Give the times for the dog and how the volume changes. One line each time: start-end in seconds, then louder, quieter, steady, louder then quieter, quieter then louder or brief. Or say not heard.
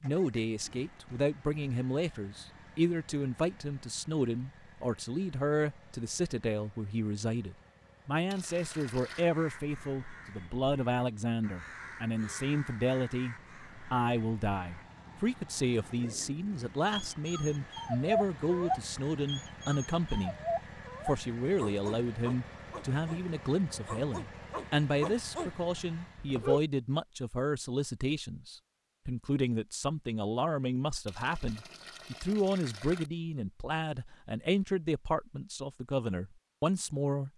16.9-23.2 quieter
23.9-25.5 brief
26.1-26.6 brief.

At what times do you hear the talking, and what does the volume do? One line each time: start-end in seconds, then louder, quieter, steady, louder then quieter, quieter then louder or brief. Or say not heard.
0.0-20.4 steady
21.1-37.3 steady.